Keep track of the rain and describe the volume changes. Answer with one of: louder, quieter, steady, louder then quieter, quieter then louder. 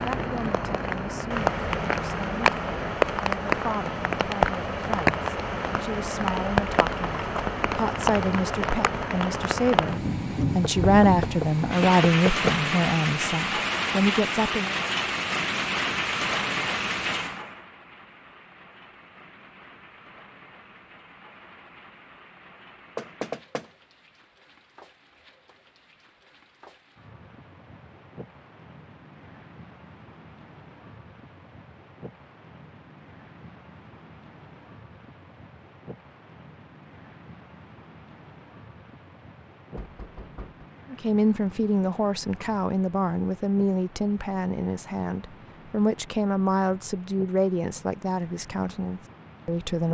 quieter.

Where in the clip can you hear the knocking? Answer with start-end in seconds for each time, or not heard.
10.6-12.6, 22.9-23.6, 39.8-40.7.